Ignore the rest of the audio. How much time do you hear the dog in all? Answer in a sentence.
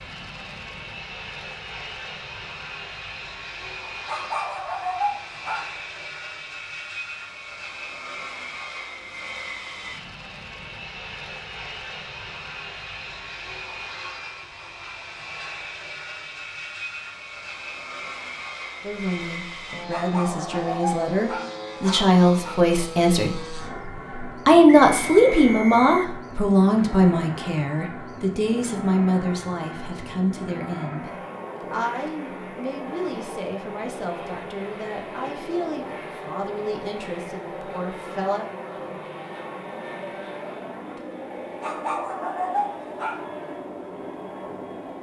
You can hear the dog for 6 seconds altogether.